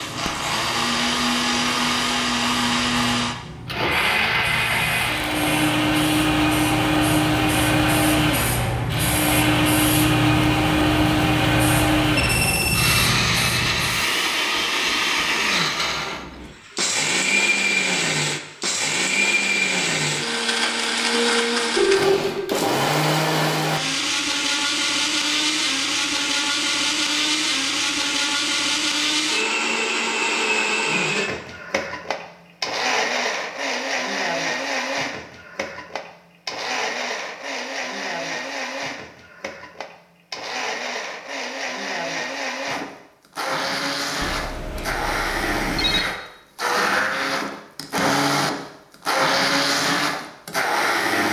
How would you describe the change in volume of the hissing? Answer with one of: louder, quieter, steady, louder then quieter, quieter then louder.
louder.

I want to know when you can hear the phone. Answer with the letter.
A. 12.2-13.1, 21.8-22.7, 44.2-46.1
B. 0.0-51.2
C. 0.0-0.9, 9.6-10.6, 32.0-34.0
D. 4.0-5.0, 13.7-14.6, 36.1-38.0
A.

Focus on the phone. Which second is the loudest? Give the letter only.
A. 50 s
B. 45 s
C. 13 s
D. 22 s
D.